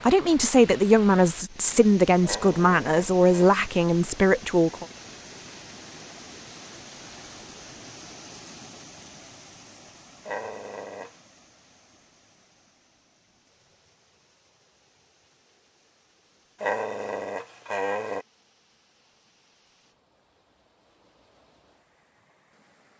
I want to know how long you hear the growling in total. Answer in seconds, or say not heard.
4 s.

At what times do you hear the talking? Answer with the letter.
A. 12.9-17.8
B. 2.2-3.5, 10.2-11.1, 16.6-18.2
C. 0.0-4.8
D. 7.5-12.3
C.